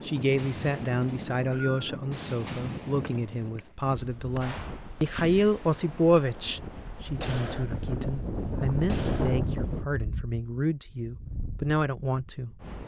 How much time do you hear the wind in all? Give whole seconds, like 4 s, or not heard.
13 s.